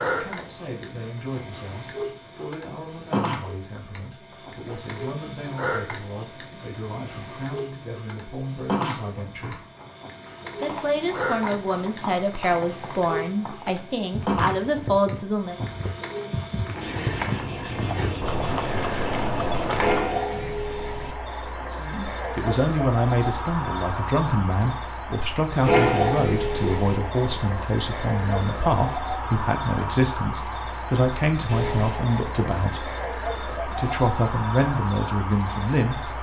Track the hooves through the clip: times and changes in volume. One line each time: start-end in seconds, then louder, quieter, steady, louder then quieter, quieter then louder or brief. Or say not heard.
9.1-20.1 louder.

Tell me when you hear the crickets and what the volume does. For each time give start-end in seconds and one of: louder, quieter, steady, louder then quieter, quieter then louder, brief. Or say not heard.
0.0-36.1 louder.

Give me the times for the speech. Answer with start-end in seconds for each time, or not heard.
0.1-9.6, 10.6-15.6, 21.8-32.9, 33.7-36.0.